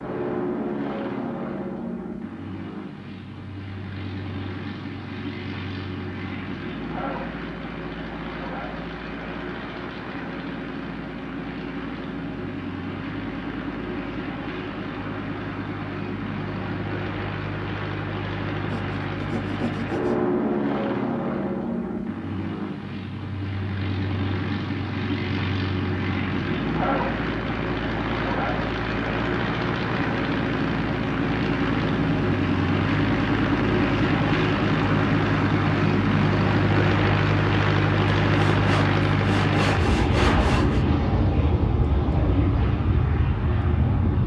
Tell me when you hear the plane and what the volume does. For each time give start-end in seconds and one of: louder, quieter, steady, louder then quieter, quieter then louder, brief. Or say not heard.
0.0-44.2 louder.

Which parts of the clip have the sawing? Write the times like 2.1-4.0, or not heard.
18.7-20.1, 38.3-40.9.